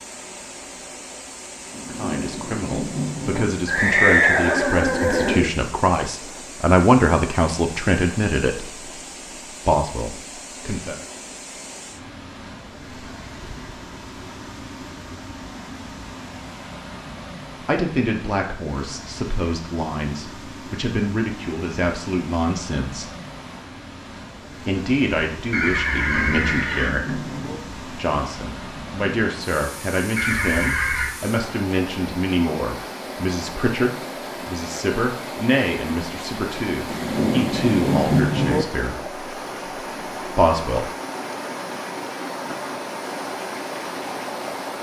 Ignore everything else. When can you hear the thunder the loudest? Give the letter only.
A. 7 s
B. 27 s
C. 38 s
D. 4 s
C.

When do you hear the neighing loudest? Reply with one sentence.
The volume of the neighing peaks at 4 seconds.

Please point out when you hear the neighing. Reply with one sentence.
The neighing can be heard from 3.6 to 5.5 s, from 25.5 to 26.9 s and from 30.1 to 31.1 s.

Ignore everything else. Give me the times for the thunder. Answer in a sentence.
You can hear the thunder from 1.7 to 3.5 s, from 26.0 to 27.6 s and from 36.9 to 38.6 s.